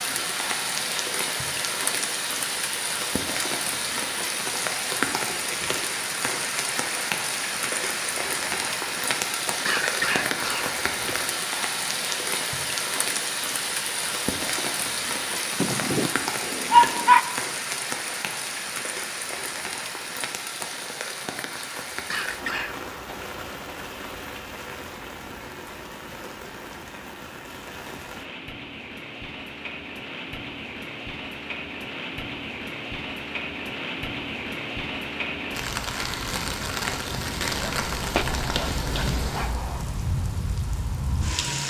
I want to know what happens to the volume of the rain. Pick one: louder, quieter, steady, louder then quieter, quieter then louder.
quieter then louder.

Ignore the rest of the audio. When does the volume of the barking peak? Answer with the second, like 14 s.
17 s.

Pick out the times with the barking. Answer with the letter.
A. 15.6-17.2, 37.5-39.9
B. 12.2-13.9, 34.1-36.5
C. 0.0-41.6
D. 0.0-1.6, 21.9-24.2
A.